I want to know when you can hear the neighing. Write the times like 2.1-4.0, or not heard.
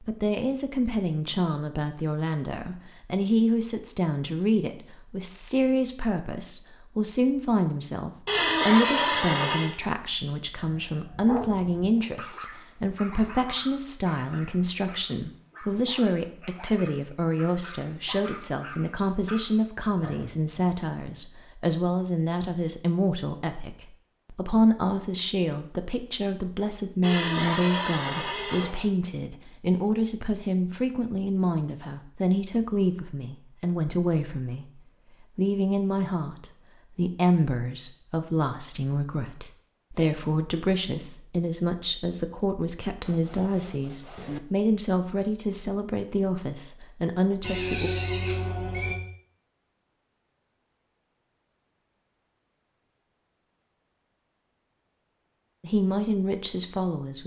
8.2-9.8, 27.0-28.9, 47.4-49.0.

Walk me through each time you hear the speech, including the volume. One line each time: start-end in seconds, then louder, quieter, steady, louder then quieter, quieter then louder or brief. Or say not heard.
0.0-47.9 steady
55.6-57.2 brief.